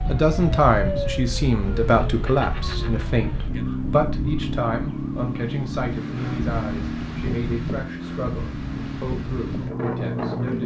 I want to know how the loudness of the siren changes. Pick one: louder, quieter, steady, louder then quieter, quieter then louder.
steady.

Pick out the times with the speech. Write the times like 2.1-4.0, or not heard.
0.1-10.6.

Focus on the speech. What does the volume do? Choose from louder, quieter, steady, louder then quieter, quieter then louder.
quieter.